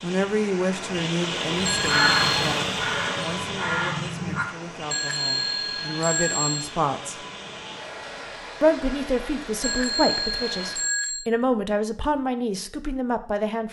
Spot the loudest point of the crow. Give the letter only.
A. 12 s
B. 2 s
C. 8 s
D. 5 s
B.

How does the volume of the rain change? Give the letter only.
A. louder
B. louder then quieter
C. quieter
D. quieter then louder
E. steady
C.